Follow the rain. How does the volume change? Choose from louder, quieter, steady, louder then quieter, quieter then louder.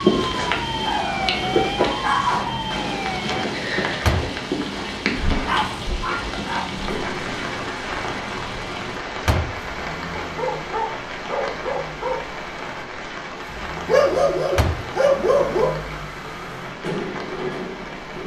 quieter.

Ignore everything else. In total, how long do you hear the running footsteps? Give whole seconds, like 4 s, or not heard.
not heard.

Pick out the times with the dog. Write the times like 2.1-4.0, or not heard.
0.8-2.6, 5.2-6.8, 10.2-12.2, 13.8-15.8.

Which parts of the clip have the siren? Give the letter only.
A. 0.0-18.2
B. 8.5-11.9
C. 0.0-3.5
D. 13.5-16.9
C.